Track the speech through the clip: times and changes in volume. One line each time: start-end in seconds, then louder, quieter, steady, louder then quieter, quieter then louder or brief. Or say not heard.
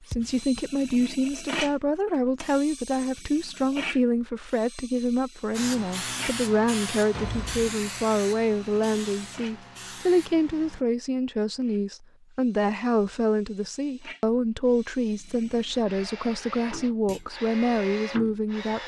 0.1-18.8 steady.